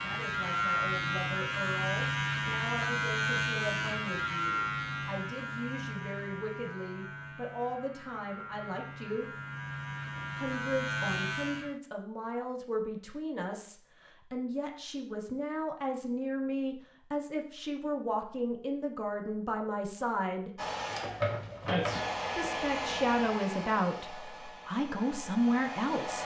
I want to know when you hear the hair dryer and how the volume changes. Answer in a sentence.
You can hear the hair dryer from 20.6 to 26.1 s, getting quieter.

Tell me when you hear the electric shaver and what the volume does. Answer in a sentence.
You can hear the electric shaver from 0.0 to 11.8 s, getting quieter then louder.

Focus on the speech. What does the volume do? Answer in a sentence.
The volume of the speech goes up.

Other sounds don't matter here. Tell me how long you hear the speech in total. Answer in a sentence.
The speech can be heard for 23 seconds in total.